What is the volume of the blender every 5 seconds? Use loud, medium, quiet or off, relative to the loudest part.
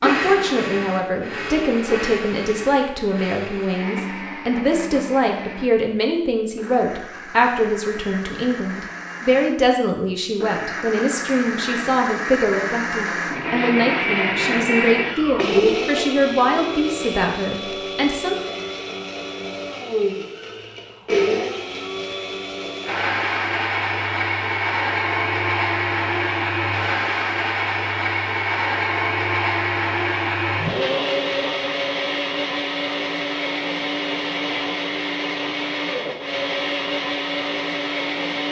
medium, quiet, loud, loud, loud, loud, loud, loud.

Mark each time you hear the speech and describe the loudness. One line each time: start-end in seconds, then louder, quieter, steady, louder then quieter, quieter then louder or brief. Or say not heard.
0.0-18.4 steady.